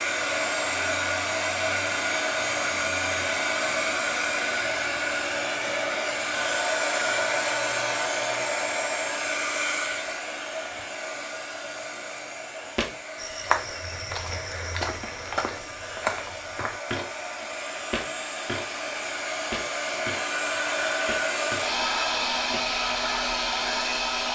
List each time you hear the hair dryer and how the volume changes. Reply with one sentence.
The hair dryer can be heard from 0.0 to 24.3 s, getting quieter then louder.